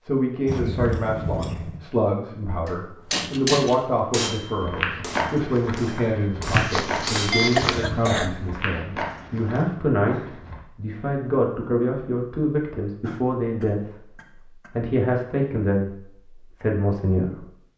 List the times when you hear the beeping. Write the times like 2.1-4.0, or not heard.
6.5-7.8.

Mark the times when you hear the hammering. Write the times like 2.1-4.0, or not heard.
2.6-8.2.